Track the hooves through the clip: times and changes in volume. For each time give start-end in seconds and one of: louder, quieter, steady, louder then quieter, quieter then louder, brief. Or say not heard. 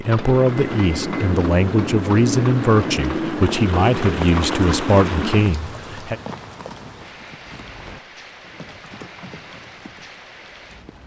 0.0-10.2 quieter.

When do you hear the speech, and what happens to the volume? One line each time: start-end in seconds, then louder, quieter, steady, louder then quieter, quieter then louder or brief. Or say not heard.
0.0-6.2 steady.